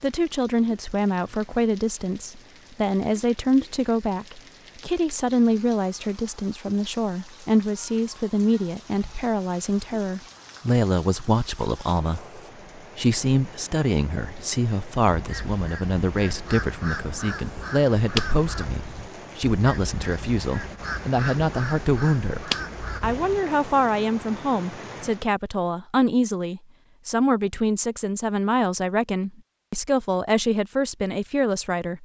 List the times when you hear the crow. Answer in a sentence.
The crow can be heard from 15.1 to 23.4 s.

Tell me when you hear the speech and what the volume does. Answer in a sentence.
The speech can be heard from 0.0 to 32.0 s, at a steady volume.